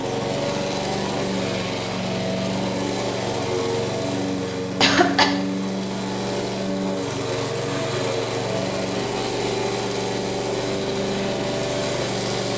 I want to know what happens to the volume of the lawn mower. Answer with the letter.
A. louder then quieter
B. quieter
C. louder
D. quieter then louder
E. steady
E.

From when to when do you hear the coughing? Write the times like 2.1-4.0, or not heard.
4.5-5.3.